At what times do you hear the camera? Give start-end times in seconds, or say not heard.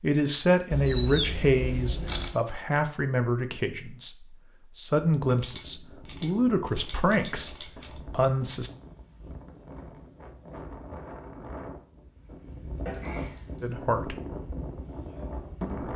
0.7-2.3, 5.4-8.0, 12.8-13.7.